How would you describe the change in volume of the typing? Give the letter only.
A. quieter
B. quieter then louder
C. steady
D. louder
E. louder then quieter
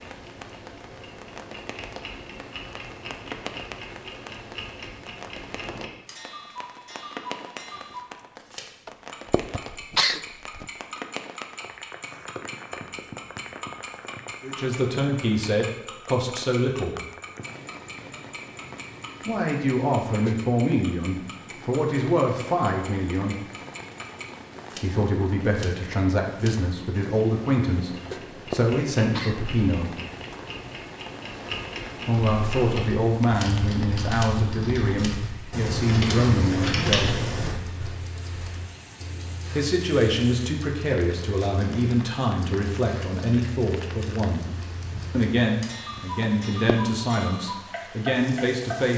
D.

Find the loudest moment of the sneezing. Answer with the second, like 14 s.
10 s.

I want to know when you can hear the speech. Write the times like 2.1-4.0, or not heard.
14.4-16.9, 19.2-23.4, 24.8-29.9, 31.9-37.2, 39.5-44.5, 45.1-48.9.